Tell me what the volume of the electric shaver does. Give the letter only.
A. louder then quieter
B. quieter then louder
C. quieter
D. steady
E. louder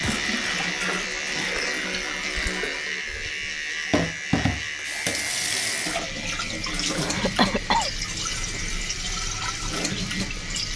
C.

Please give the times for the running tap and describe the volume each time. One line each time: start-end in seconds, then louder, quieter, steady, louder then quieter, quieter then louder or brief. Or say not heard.
0.0-10.7 steady.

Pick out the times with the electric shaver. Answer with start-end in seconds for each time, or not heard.
0.0-10.7.